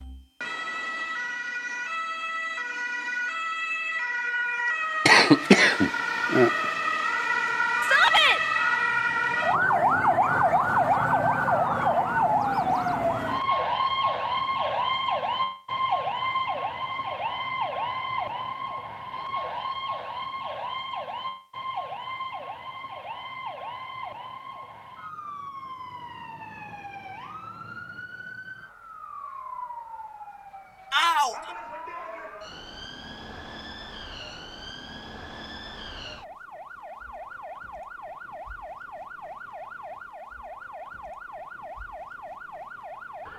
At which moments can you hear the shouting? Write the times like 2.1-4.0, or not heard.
7.8-8.4, 30.9-31.4.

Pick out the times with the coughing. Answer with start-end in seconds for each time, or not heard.
5.0-6.7.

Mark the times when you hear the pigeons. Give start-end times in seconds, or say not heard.
not heard.